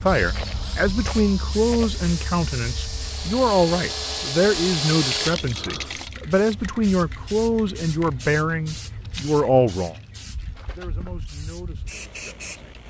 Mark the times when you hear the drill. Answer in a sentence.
The drill can be heard from 0.0 to 6.7 s.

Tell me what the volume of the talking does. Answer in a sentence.
The loudness of the talking goes down.